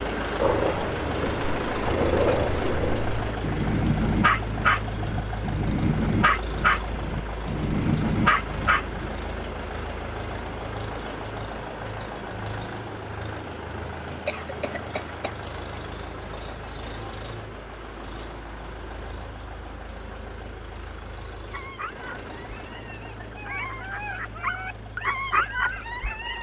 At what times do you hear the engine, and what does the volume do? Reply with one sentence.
You can hear the engine from 0.0 to 26.3 s, getting quieter.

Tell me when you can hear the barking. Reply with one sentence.
The barking can be heard from 0.4 to 9.1 s and from 21.5 to 26.3 s.